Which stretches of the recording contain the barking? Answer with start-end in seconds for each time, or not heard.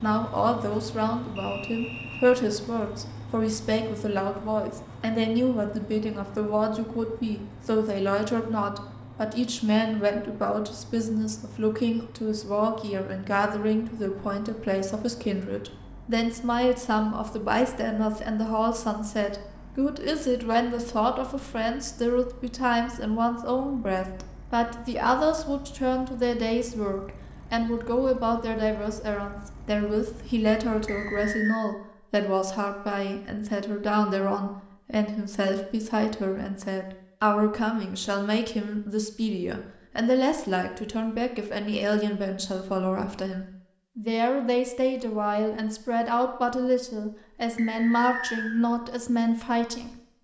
not heard.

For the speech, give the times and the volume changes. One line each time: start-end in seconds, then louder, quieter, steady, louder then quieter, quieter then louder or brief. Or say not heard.
0.0-50.0 steady.